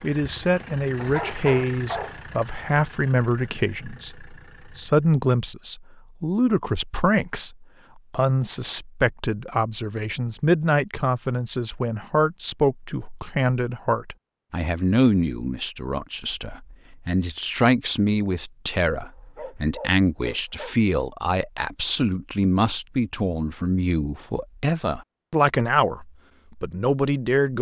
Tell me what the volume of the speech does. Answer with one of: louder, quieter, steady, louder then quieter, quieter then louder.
steady.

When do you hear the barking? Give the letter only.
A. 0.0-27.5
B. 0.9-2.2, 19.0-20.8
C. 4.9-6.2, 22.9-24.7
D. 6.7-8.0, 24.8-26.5
B.